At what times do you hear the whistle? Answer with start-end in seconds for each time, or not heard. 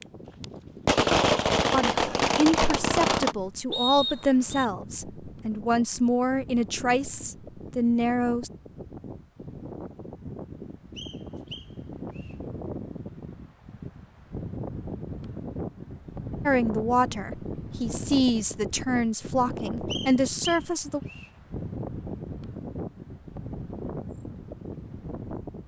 3.7-4.7, 10.9-12.3, 19.9-21.3.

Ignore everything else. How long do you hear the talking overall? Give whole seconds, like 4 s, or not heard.
11 s.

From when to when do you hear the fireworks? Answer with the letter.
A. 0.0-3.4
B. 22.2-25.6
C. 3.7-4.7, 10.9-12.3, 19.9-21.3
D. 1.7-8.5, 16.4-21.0
A.